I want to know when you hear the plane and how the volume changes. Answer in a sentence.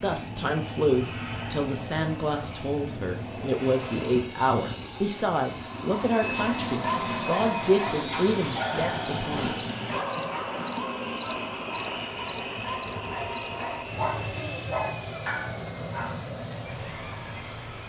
The plane can be heard from 0.0 to 17.8 s, at a steady volume.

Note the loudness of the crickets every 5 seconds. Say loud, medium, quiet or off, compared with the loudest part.
off, off, loud, loud.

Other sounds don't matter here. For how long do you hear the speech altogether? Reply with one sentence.
The speech can be heard for 10 seconds in total.